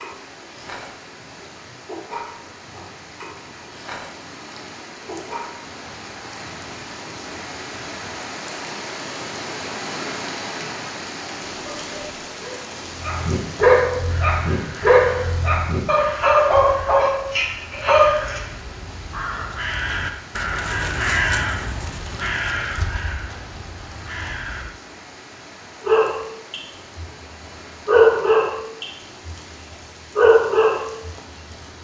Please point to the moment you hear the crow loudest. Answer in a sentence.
The volume of the crow peaks at 21 seconds.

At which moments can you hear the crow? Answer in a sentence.
The crow can be heard from 14.1 to 24.6 s.